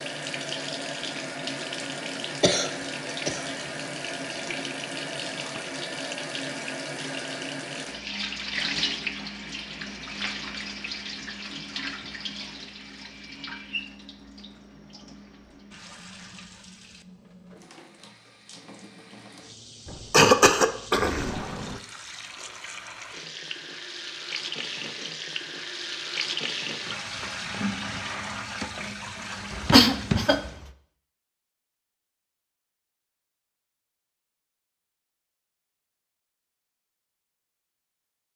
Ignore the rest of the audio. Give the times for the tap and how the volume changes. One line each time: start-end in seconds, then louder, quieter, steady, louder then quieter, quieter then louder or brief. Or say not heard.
0.0-30.6 quieter then louder.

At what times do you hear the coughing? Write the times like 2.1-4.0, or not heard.
2.4-3.5, 19.9-21.8, 29.6-30.5.